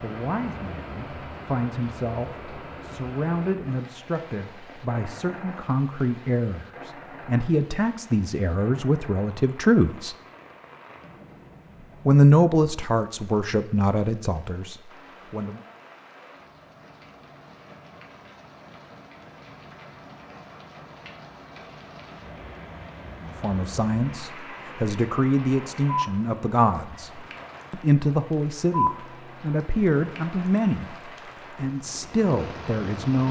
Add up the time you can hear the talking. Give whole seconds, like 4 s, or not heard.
24 s.